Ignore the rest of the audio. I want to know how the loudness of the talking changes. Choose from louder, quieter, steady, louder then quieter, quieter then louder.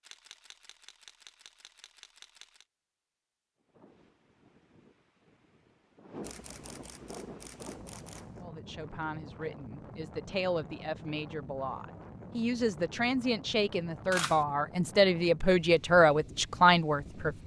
louder.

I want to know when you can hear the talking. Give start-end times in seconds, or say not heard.
8.4-17.4.